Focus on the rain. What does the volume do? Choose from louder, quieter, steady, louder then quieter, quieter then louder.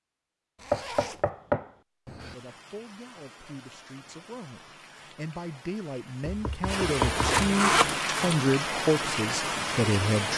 louder.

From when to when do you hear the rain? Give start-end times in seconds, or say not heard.
2.1-10.3.